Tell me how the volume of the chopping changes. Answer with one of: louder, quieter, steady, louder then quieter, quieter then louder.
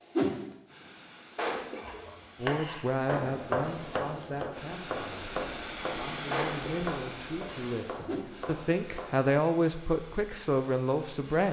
quieter.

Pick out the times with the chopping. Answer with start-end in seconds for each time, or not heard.
1.8-9.2.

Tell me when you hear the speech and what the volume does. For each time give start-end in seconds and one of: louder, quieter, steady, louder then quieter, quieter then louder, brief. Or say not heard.
2.4-11.4 quieter then louder.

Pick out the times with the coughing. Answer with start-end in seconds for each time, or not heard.
1.4-2.0, 6.3-6.9.